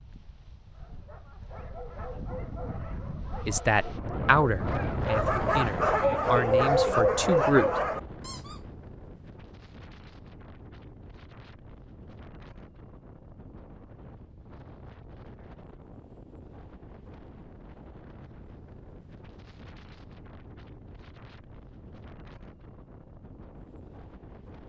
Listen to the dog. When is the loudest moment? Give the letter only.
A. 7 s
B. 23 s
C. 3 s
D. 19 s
A.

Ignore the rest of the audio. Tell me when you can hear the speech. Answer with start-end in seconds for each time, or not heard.
3.5-7.7.